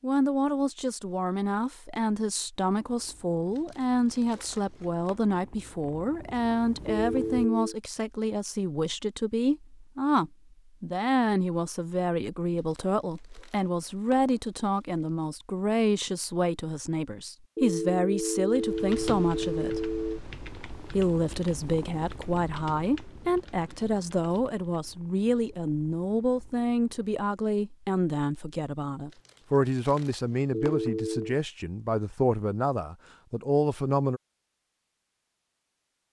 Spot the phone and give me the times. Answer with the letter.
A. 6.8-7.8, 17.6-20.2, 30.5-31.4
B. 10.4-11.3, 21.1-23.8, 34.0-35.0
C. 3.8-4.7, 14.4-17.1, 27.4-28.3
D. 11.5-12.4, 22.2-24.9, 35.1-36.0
A.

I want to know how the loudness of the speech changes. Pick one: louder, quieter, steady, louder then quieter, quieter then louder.
steady.